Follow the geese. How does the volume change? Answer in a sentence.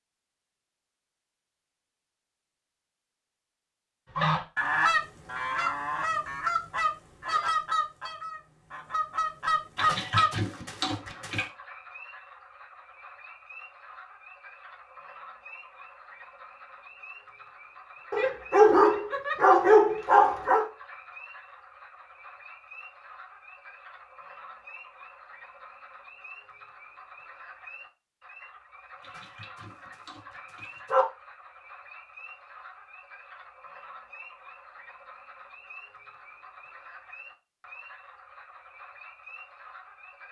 The volume of the geese goes down, then up.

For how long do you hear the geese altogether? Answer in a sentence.
You can hear the geese for 6 seconds altogether.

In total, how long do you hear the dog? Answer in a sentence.
You can hear the dog for 5 seconds altogether.